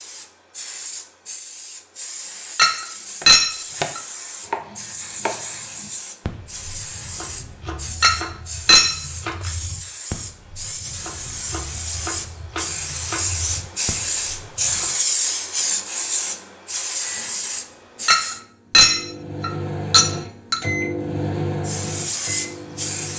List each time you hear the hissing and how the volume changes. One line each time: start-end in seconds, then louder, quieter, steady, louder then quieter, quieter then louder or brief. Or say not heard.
0.0-18.4 louder
21.6-23.1 brief.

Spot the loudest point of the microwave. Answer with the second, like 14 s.
21 s.